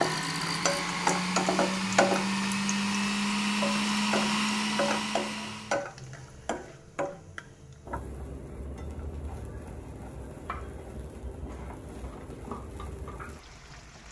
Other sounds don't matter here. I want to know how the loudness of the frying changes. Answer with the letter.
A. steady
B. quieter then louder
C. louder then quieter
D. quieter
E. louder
D.